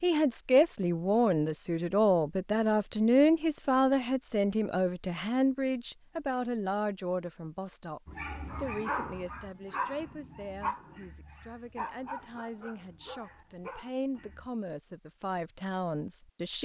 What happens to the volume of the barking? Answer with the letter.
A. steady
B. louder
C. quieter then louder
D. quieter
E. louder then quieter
D.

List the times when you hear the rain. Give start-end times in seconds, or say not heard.
not heard.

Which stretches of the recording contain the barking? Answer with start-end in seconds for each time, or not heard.
8.1-14.5.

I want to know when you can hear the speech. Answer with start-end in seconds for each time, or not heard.
0.0-16.5.